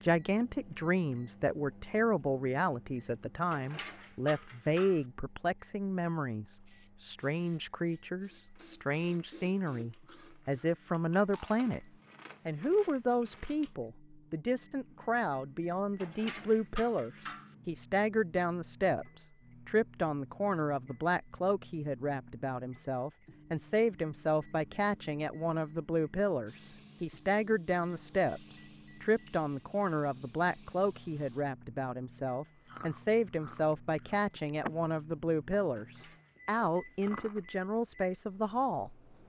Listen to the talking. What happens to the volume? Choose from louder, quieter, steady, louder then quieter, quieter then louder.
steady.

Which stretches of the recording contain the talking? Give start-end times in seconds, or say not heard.
0.0-11.8, 12.4-39.0.